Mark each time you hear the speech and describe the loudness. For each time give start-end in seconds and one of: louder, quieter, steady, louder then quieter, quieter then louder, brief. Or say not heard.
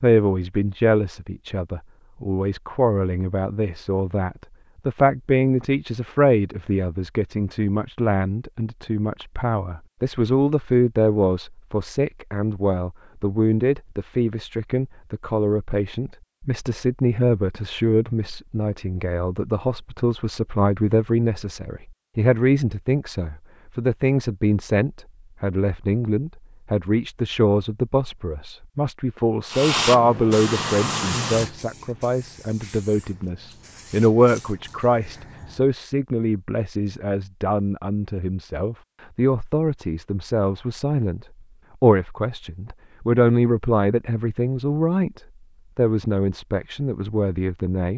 0.0-47.9 steady.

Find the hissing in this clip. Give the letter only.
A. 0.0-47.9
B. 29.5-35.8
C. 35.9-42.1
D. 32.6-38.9
B.